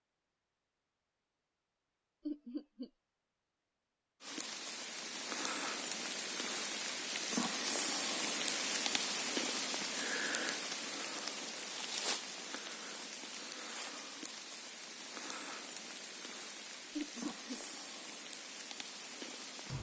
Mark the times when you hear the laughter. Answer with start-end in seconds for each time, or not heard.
2.2-2.9, 16.9-17.6.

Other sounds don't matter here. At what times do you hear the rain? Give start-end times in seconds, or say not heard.
4.2-19.7.